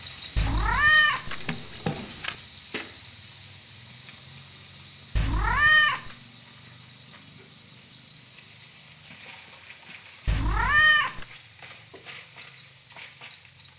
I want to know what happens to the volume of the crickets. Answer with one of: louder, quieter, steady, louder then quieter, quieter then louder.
quieter.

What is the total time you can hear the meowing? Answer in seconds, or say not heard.
4 s.